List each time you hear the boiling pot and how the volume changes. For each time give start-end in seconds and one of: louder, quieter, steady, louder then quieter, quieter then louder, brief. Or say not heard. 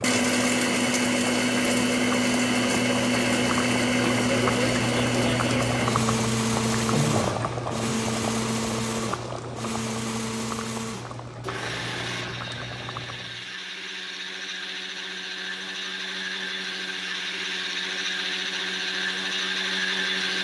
0.0-13.6 louder then quieter.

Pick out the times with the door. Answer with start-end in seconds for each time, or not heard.
not heard.